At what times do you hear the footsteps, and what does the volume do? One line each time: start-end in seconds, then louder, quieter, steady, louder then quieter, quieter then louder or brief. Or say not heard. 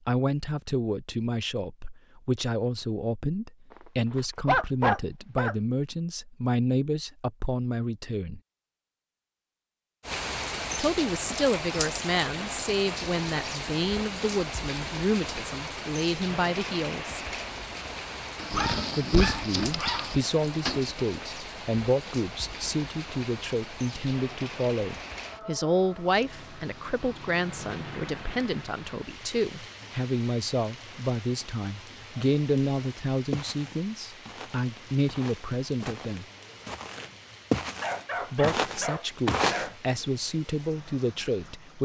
33.3-39.7 louder.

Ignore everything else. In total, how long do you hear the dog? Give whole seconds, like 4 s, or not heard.
6 s.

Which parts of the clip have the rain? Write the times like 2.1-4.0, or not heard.
10.0-41.7.